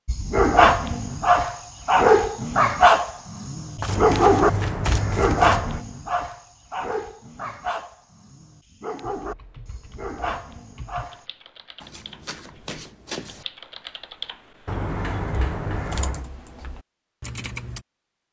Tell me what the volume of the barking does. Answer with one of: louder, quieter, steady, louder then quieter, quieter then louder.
quieter.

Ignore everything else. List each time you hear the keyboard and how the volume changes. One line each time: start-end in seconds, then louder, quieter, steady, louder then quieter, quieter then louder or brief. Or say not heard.
9.0-17.8 louder.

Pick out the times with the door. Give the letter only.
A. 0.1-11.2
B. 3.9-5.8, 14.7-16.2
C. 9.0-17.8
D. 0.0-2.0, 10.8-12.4
B.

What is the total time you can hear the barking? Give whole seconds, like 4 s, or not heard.
11 s.